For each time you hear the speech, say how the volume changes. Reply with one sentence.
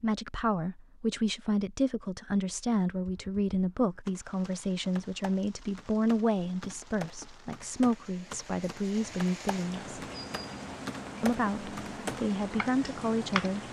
The speech can be heard from 0.0 to 9.9 s, at a steady volume; and briefly from 11.2 to 13.6 s.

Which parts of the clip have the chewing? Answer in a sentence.
The chewing can't be heard in this clip.